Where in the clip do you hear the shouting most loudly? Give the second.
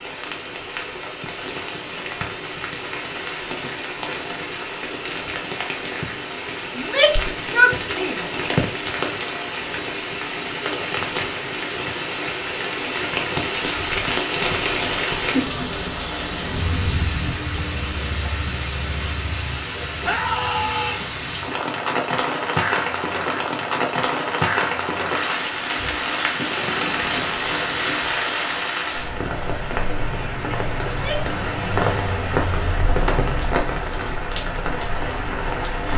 8 s.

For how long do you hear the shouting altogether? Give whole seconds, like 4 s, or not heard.
3 s.